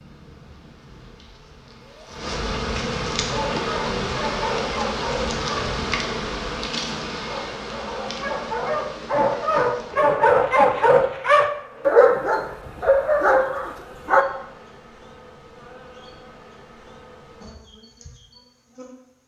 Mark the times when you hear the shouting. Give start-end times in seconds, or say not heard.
1.8-2.2.